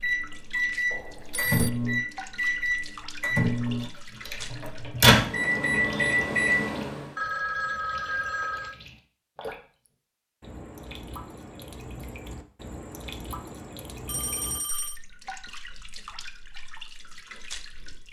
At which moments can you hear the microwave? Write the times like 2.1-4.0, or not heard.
0.0-7.0.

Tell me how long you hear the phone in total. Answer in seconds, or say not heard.
3 s.